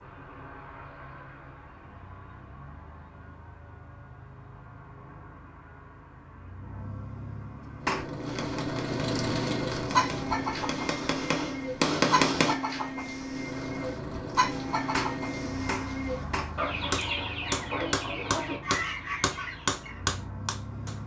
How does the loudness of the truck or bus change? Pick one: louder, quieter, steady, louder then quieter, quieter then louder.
louder then quieter.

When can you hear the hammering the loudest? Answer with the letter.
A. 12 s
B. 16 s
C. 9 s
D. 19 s
A.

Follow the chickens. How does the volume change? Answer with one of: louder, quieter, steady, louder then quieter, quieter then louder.
steady.